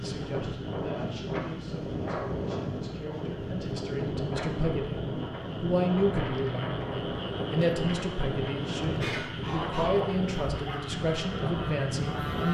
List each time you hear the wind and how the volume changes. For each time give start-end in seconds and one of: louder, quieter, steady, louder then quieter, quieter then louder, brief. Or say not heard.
0.0-12.4 steady.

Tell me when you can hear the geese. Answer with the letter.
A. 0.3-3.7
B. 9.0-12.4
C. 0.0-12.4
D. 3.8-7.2
B.